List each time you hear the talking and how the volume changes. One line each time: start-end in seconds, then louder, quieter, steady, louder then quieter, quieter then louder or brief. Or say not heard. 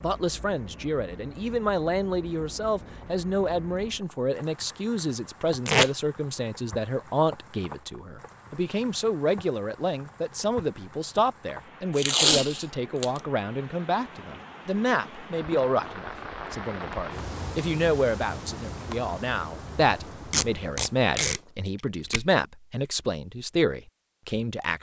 0.0-24.7 steady.